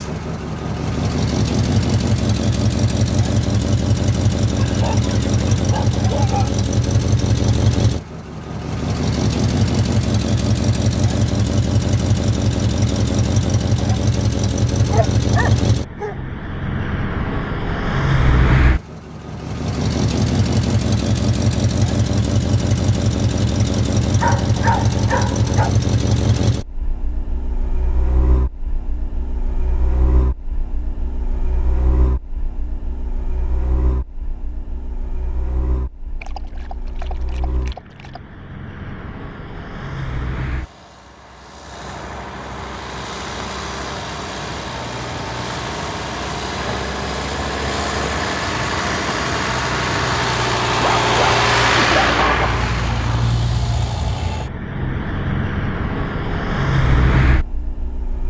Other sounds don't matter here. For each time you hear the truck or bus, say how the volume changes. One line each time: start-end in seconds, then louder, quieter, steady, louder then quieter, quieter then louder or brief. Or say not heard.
0.0-58.2 quieter then louder.